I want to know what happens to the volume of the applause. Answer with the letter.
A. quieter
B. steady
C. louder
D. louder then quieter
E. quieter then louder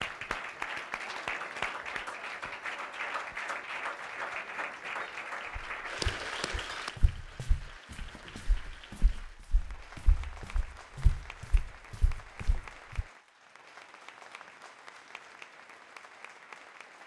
A.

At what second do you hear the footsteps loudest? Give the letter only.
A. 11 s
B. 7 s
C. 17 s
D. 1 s
A.